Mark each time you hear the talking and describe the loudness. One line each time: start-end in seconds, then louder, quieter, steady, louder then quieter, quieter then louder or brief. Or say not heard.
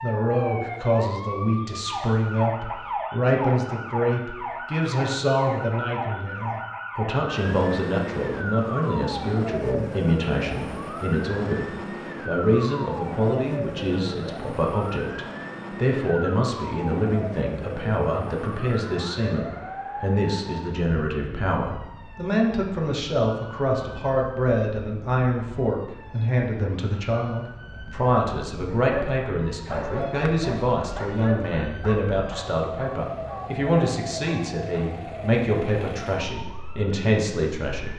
0.0-37.9 steady.